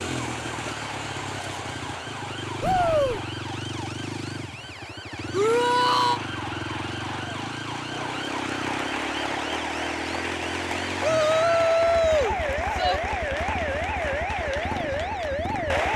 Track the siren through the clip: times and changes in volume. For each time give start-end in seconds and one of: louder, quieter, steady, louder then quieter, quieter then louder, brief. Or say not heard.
0.0-15.9 louder.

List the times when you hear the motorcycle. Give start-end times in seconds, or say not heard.
0.0-15.9.